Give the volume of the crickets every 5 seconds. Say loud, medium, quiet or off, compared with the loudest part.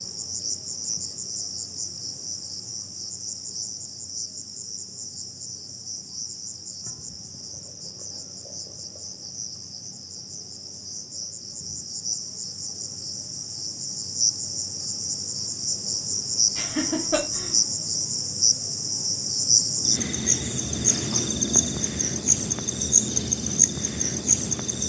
medium, quiet, medium, loud, loud.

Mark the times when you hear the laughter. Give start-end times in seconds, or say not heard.
16.6-17.6.